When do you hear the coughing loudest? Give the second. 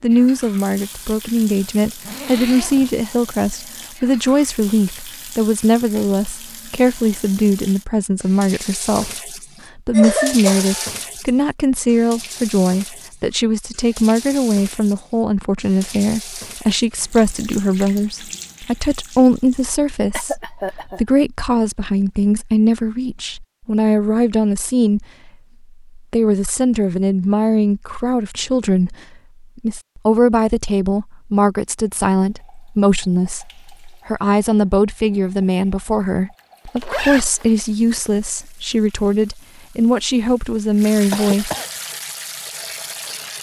10 s.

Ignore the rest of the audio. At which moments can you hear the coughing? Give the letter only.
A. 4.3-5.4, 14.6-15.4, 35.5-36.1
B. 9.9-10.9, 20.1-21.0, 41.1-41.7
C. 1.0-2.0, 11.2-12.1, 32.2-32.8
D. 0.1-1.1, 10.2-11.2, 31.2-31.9
B.